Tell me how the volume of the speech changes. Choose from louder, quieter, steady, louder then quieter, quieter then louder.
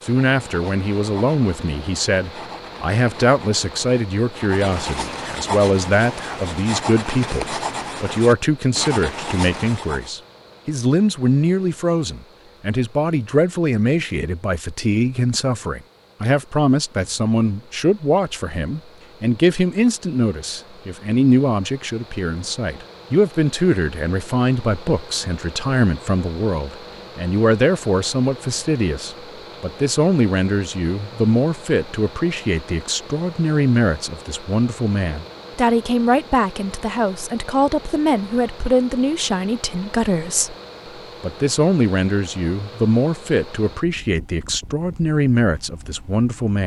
steady.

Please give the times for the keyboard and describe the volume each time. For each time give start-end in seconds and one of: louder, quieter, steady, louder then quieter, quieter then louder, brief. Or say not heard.
not heard.